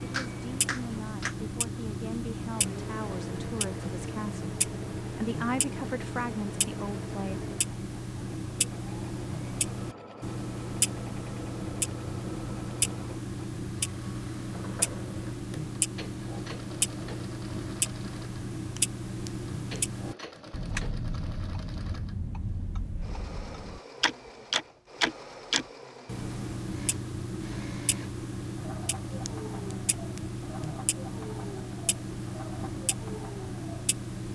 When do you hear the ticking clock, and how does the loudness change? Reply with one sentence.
The ticking clock can be heard from 0.0 to 34.3 s, at a steady volume.